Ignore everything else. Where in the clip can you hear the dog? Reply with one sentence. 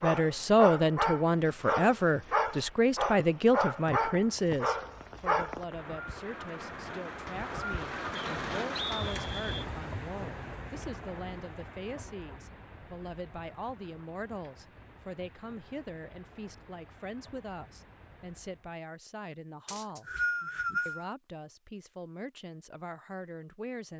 The dog can be heard from 0.0 to 5.7 s.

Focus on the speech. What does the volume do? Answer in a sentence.
The loudness of the speech goes down.